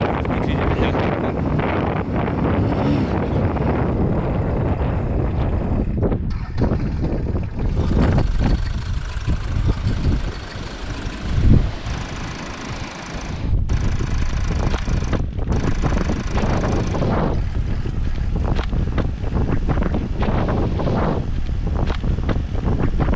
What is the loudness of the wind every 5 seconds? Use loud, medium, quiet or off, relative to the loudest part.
loud, loud, medium, loud, loud.